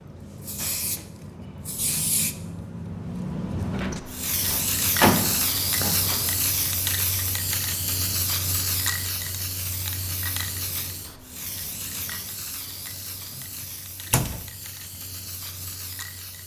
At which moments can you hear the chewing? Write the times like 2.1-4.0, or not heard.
not heard.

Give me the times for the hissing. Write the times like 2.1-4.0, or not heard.
0.0-16.4.